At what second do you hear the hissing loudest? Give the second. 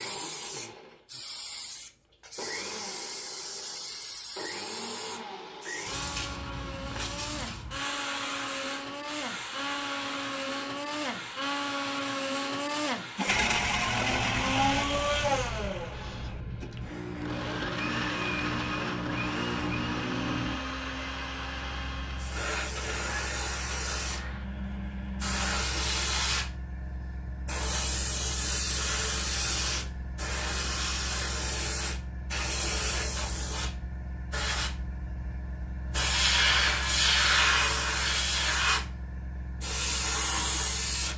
37 s.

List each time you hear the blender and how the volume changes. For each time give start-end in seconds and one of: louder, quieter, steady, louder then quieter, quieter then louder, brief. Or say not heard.
0.0-25.6 louder then quieter.